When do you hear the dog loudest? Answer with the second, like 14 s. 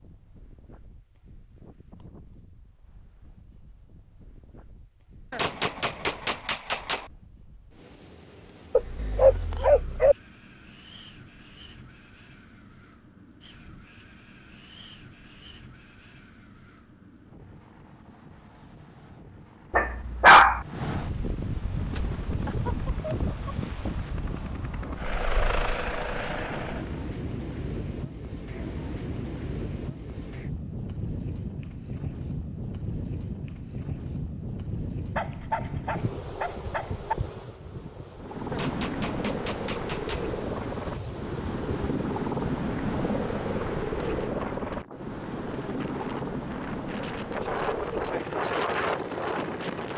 20 s.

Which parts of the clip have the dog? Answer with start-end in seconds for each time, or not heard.
8.8-10.2, 19.7-20.6, 35.1-37.1.